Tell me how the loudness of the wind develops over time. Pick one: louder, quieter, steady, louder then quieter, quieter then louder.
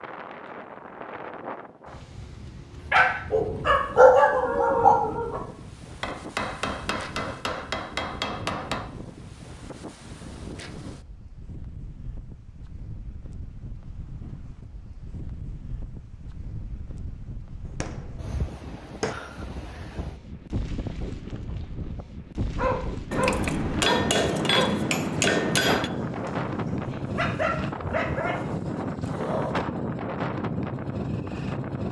louder.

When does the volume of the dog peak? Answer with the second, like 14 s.
4 s.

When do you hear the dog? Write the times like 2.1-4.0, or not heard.
2.9-5.4, 22.6-24.8, 25.9-29.6.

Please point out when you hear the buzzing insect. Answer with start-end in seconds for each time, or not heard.
not heard.